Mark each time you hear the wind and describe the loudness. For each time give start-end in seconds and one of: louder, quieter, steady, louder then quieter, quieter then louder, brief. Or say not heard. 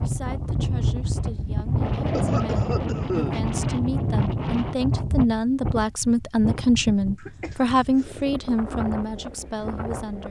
0.0-10.2 quieter.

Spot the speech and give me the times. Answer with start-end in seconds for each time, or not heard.
0.0-10.2.